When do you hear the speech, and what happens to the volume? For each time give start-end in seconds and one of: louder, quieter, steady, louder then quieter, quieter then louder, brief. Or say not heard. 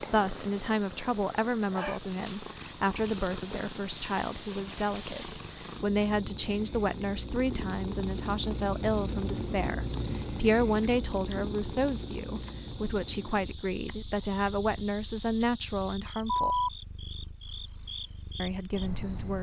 0.0-16.6 steady
18.4-19.3 brief.